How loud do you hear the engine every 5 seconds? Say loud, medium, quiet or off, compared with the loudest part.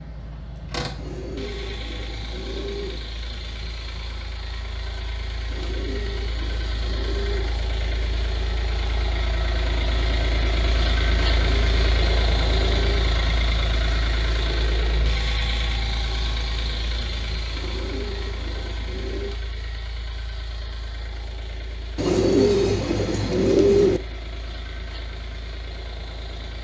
medium, medium, loud, medium, quiet, quiet.